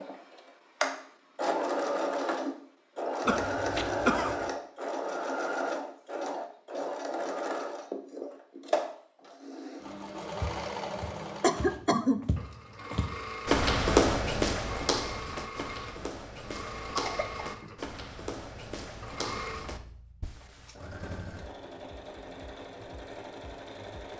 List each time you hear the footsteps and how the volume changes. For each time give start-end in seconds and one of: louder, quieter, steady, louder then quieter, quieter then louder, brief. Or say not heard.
10.3-20.8 louder then quieter.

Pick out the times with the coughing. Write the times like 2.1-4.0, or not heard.
3.2-4.5, 11.4-12.2, 16.8-17.4.